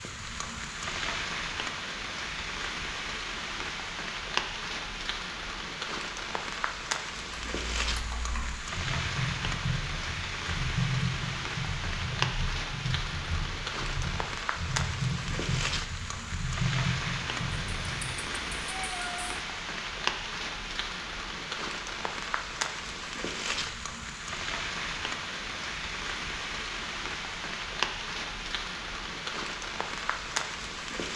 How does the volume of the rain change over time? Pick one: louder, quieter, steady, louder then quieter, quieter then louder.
steady.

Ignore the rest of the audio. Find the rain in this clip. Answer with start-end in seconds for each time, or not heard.
0.0-31.1.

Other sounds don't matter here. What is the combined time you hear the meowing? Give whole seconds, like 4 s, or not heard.
2 s.